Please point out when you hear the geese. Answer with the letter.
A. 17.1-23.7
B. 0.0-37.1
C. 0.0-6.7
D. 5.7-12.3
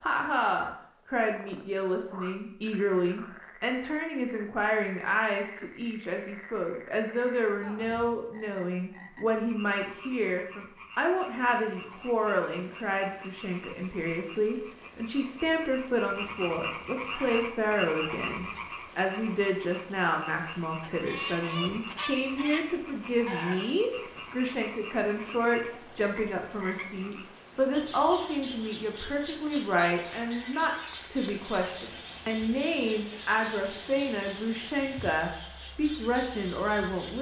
A.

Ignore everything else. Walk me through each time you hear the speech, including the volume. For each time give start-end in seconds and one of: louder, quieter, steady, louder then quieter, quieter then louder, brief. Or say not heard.
0.0-37.1 steady.